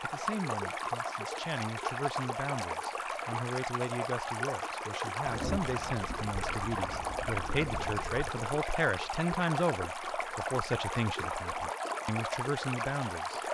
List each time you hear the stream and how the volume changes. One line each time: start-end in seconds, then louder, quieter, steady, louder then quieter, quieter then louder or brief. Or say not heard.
0.0-13.5 steady.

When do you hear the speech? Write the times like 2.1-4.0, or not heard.
0.0-13.5.